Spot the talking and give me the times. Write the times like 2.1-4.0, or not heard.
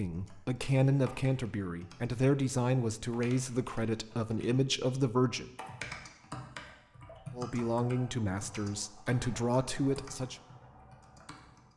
0.0-5.5, 7.3-10.3.